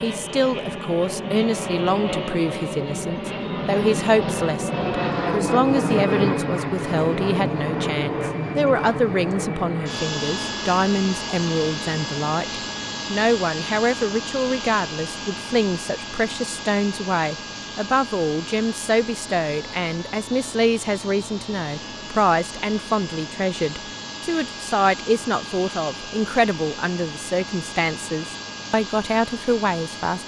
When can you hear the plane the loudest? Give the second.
6 s.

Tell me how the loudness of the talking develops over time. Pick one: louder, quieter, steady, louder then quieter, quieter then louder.
steady.